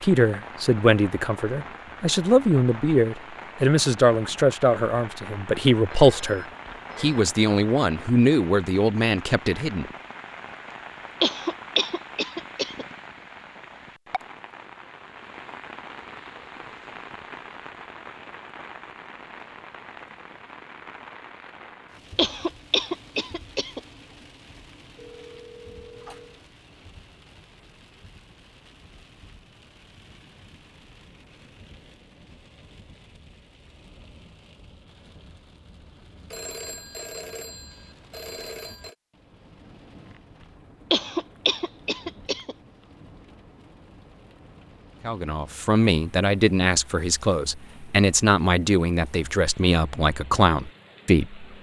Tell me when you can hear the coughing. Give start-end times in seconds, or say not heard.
11.2-12.8, 22.1-23.8, 40.9-42.5.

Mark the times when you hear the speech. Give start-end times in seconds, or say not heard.
0.0-9.8, 45.0-51.5.